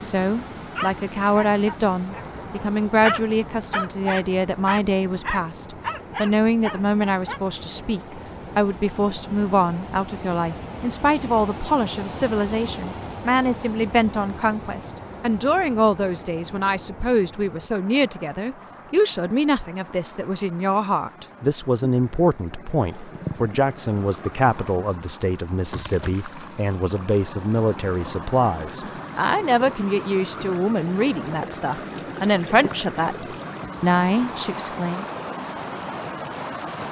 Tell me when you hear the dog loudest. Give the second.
3 s.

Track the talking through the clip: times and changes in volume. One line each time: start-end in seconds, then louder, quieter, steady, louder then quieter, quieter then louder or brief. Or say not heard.
0.0-35.0 steady.